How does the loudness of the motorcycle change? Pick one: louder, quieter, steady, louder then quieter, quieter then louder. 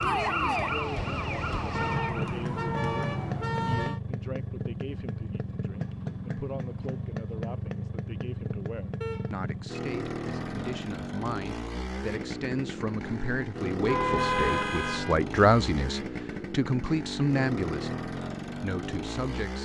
steady.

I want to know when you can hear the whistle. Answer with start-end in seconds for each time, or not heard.
not heard.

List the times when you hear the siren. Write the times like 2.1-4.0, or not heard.
0.0-3.5.